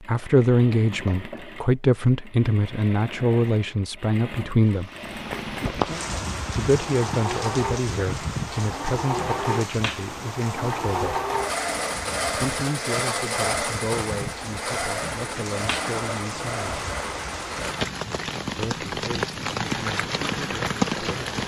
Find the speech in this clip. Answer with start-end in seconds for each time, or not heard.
0.1-4.9, 6.5-11.2, 12.2-16.9, 18.6-21.4.